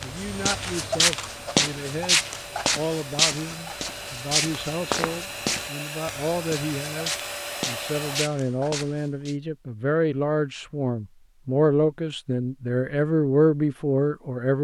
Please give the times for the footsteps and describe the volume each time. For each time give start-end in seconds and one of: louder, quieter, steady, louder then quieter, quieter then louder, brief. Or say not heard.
0.0-9.3 quieter.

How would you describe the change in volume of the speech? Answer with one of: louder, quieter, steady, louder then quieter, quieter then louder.
louder.